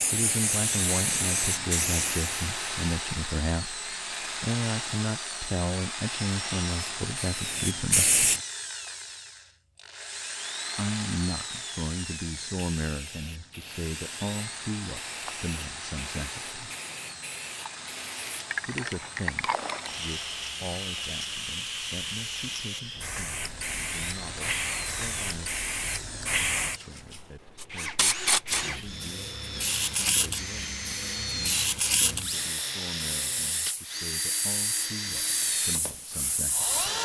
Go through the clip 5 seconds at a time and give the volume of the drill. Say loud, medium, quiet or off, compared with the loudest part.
loud, loud, medium, medium, medium, medium, loud, loud.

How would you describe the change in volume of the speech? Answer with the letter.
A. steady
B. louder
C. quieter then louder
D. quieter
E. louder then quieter
D.